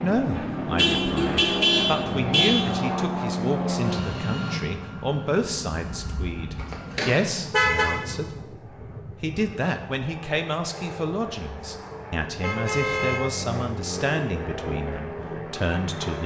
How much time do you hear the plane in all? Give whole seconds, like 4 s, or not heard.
16 s.